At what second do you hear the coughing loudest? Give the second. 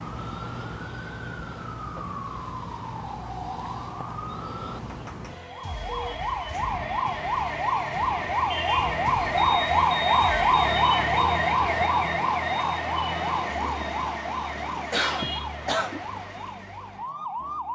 15 s.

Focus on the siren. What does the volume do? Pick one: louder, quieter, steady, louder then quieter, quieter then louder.
louder then quieter.